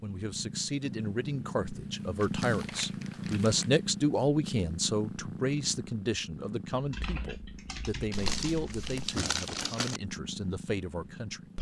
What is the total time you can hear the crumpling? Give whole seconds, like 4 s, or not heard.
4 s.